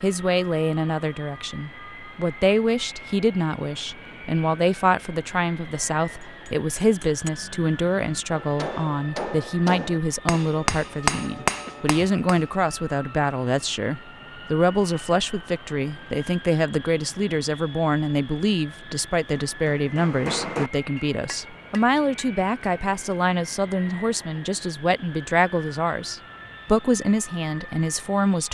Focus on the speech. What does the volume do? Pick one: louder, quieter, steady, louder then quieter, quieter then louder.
steady.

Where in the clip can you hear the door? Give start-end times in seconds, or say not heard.
not heard.